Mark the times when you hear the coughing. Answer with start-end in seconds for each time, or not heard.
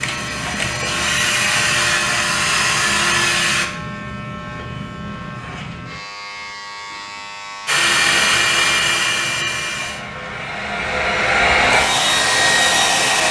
not heard.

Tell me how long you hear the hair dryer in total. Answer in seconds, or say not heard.
9 s.